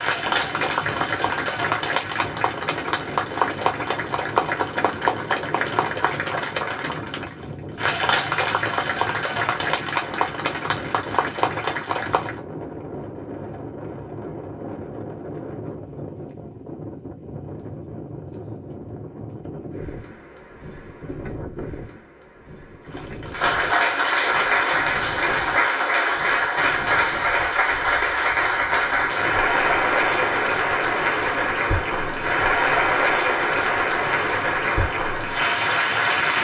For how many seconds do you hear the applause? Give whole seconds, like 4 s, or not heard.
26 s.